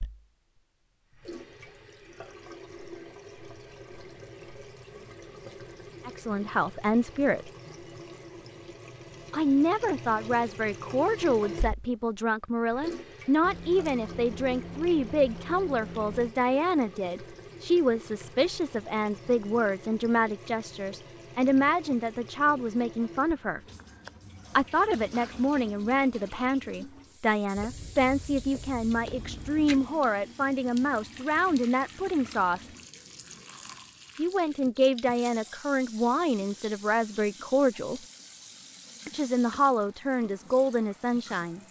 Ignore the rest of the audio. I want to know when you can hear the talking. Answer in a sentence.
You can hear the talking from 6.0 to 7.5 s, from 9.3 to 23.6 s, from 24.6 to 32.7 s, from 34.1 to 38.0 s and from 39.0 to 41.6 s.